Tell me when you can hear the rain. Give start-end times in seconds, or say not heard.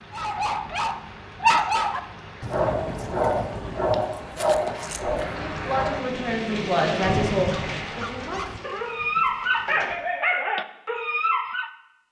0.0-9.9.